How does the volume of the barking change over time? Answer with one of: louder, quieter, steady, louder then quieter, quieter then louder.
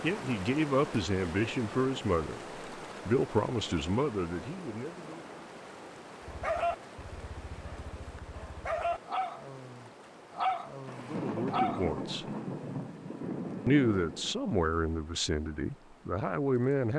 quieter then louder.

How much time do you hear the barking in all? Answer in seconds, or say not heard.
6 s.